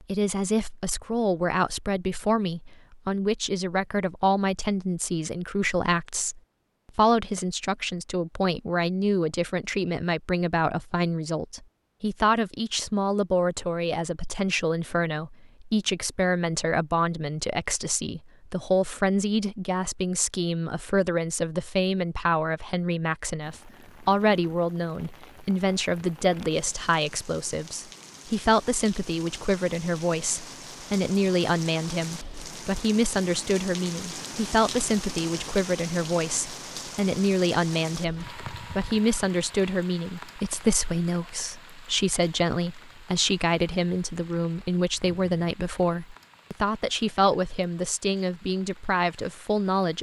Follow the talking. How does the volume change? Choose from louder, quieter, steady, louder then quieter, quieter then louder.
steady.